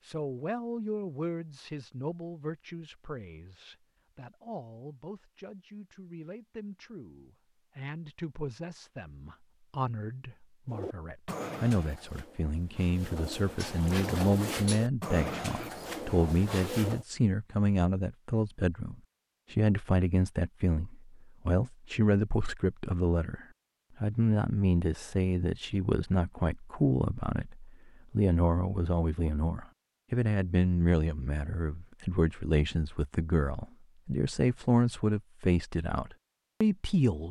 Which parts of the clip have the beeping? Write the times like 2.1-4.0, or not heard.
not heard.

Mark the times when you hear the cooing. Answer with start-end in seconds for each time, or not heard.
10.7-17.1.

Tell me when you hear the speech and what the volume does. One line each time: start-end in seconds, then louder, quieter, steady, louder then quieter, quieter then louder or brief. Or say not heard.
0.1-37.2 louder.